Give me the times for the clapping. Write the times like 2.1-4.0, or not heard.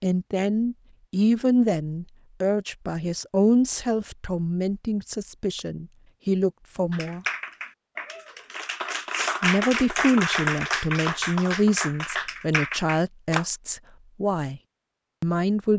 6.9-13.4.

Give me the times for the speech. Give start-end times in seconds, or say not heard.
0.0-7.2, 9.4-14.6, 15.2-15.7.